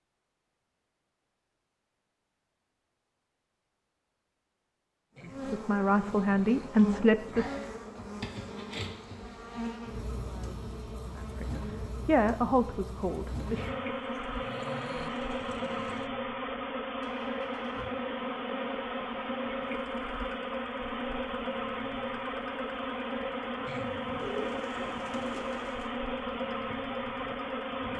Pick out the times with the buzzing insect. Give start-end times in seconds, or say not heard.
5.2-27.9.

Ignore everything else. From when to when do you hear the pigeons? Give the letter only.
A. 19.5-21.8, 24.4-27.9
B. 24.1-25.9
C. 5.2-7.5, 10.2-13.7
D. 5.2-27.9
B.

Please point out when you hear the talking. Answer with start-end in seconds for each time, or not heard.
5.2-7.5, 10.2-13.7.